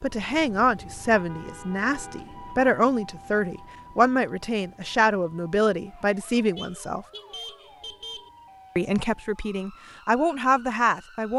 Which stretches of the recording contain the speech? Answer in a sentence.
The speech can be heard from 0.0 to 7.0 s and from 8.8 to 11.3 s.